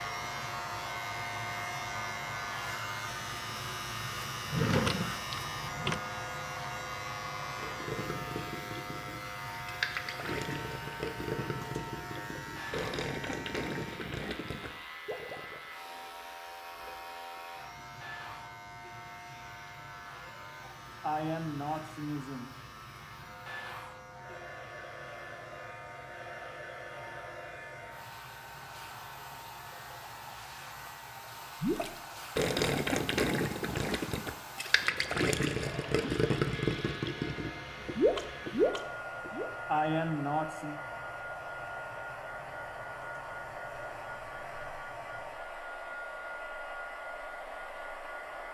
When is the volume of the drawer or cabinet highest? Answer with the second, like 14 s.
5 s.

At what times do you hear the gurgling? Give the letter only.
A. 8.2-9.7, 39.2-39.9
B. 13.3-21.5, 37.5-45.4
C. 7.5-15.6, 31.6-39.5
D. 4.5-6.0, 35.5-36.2
C.